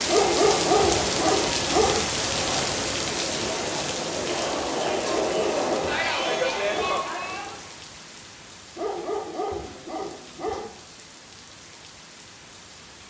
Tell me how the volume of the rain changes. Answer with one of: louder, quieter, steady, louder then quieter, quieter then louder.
quieter.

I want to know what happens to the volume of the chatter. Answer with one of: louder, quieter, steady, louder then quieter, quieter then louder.
louder.